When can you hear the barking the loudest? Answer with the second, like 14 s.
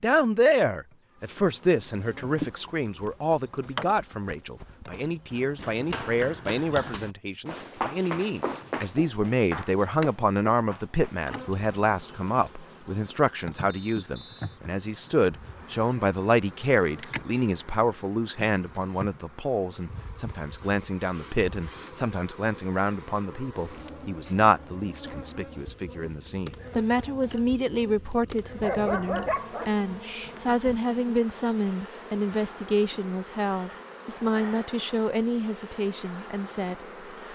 29 s.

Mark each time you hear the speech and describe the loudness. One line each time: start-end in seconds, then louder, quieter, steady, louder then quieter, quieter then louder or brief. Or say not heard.
0.0-36.8 steady.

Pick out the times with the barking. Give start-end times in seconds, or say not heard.
28.6-30.8.